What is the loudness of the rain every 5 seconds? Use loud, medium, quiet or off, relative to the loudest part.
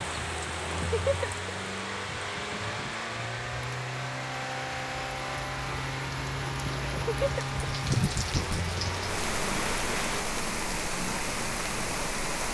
medium, loud, loud.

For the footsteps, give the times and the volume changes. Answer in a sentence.
You can't hear the footsteps here.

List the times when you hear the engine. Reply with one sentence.
You can hear the engine from 0.0 to 10.2 s.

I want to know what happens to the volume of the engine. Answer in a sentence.
The loudness of the engine stays about the same.